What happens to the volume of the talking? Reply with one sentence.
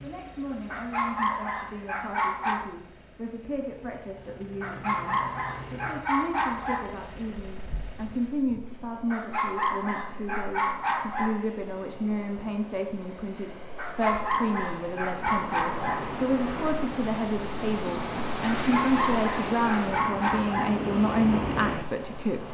The volume of the talking goes up.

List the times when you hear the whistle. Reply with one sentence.
You can't hear the whistle here.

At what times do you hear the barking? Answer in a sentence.
You can hear the barking from 0.7 to 2.7 s, from 4.6 to 7.0 s, from 9.1 to 11.4 s, from 13.8 to 16.1 s and from 18.5 to 20.8 s.